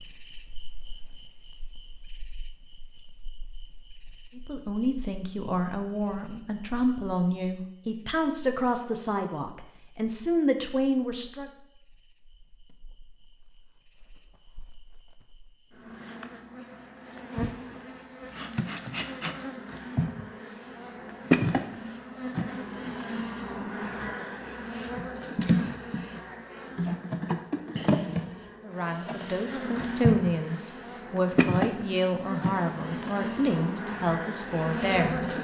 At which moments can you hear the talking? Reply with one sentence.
You can hear the talking from 4.3 to 11.5 s and from 28.6 to 35.3 s.